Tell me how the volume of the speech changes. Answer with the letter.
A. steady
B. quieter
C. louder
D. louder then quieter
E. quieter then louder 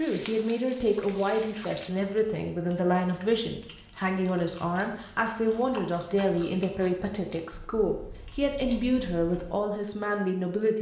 A.